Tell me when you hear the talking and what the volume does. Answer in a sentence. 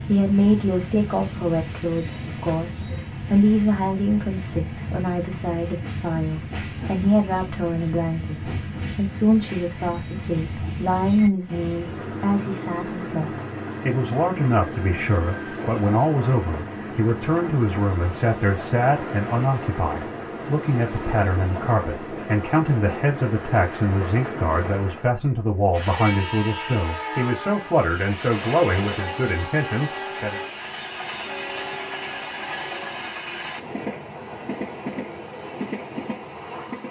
The talking can be heard from 0.1 to 30.4 s, at a steady volume.